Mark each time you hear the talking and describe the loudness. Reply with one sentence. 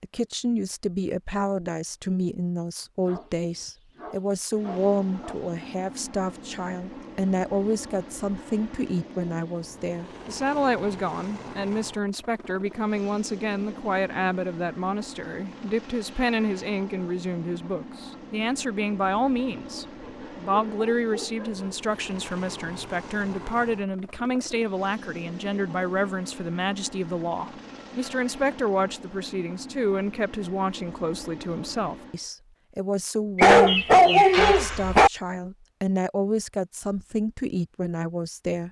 The talking can be heard from 0.0 to 38.6 s, at a steady volume.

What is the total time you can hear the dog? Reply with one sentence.
The dog can be heard for 6 seconds in total.